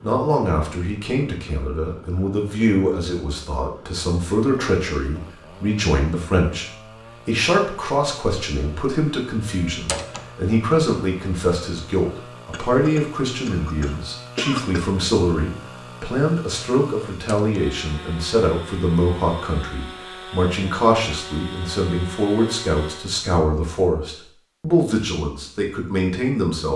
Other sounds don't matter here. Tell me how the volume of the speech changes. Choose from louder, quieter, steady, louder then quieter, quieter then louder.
steady.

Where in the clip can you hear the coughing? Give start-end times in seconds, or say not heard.
12.5-14.9.